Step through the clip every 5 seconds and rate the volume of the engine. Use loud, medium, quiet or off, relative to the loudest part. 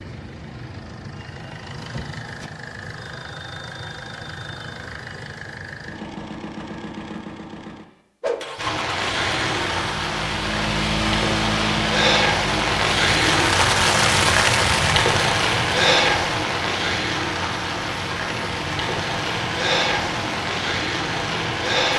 medium, medium, loud, medium, medium.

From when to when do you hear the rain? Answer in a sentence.
You can hear the rain from 8.6 to 21.9 s.